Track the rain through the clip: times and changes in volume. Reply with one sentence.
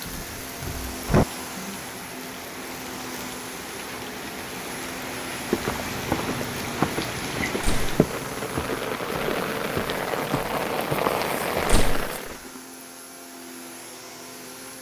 The rain can be heard from 0.0 to 12.3 s, getting louder.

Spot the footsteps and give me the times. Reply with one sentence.
The footsteps can be heard from 5.5 to 12.5 s.